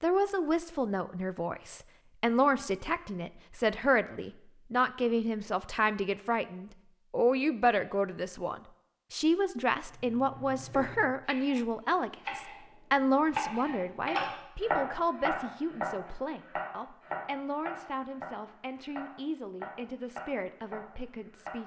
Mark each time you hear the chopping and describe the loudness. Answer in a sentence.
The chopping can be heard briefly from 9.8 to 12.6 s; and from 13.3 to 21.6 s, getting quieter.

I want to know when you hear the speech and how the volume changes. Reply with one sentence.
The speech can be heard from 0.0 to 21.6 s, getting quieter.